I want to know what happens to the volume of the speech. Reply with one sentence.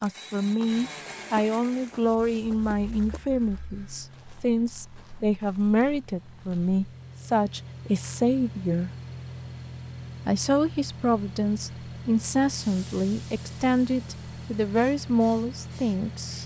The volume of the speech stays about the same.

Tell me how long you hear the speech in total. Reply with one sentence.
You can hear the speech for 15 seconds altogether.